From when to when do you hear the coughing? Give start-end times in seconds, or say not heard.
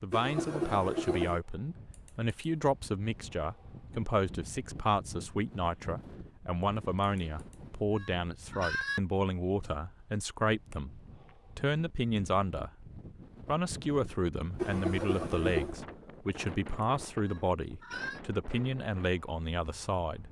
0.1-1.4, 14.6-15.8.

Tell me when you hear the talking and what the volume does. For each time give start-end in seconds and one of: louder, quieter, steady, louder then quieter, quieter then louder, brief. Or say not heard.
0.0-12.7 steady
13.4-20.2 steady.